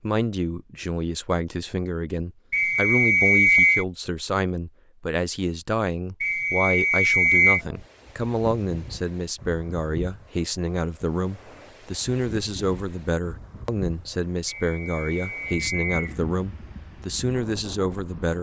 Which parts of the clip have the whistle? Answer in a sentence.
You can hear the whistle from 2.5 to 3.9 s, from 6.2 to 7.6 s and from 14.4 to 16.1 s.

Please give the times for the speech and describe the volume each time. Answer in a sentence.
The speech can be heard from 0.0 to 18.3 s, at a steady volume.